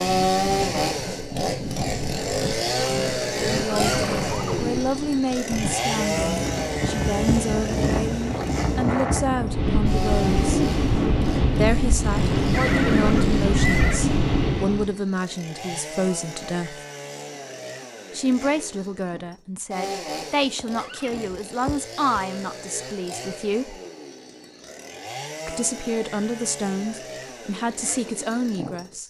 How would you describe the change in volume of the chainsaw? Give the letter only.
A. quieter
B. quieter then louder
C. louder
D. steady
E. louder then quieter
A.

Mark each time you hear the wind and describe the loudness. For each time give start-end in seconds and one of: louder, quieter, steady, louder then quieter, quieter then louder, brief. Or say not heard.
0.0-14.9 louder.